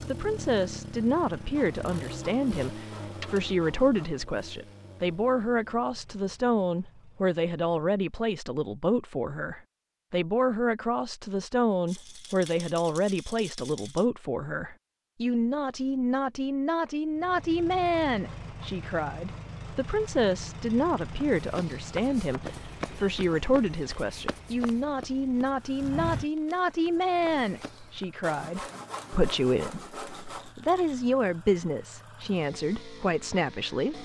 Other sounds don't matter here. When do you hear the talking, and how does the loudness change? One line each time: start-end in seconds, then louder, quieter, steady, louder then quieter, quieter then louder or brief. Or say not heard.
0.1-33.9 steady.